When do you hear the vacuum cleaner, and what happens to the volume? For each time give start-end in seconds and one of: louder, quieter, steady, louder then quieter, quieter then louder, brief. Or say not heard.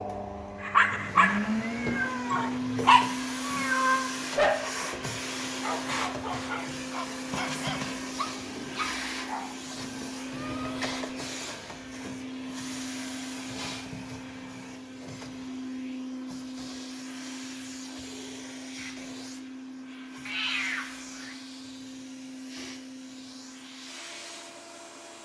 0.0-25.2 quieter.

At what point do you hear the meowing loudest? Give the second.
4 s.